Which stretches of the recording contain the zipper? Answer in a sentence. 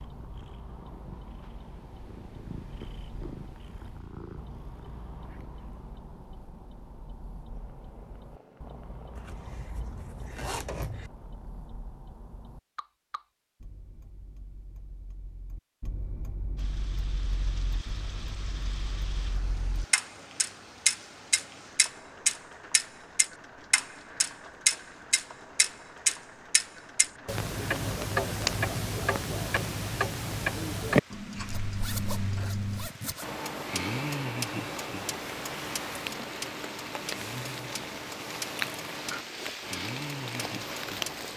The zipper can be heard from 9.2 to 11.1 s and from 31.4 to 33.2 s.